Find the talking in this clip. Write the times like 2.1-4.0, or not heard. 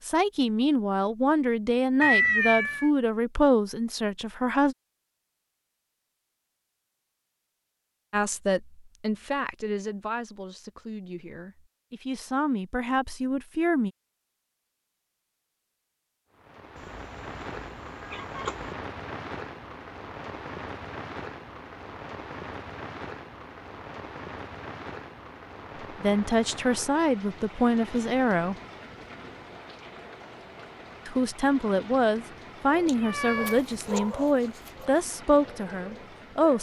0.1-4.8, 8.1-13.9, 25.9-28.6, 31.1-36.5.